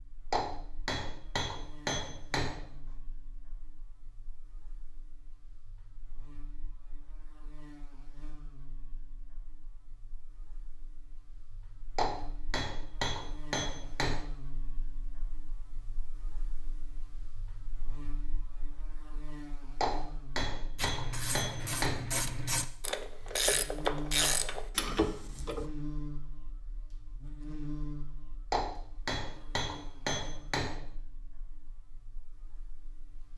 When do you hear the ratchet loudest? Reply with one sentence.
The volume of the ratchet peaks at 24 seconds.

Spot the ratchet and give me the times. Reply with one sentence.
The ratchet can be heard from 20.8 to 25.7 s.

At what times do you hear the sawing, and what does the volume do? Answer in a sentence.
The sawing can't be heard in this clip.